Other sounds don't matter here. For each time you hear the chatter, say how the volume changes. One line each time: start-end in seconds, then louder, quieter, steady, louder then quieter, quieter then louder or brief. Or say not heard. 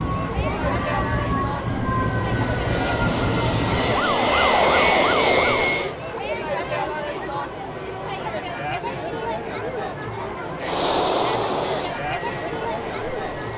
0.0-13.5 steady.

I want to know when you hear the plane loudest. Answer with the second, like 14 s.
5 s.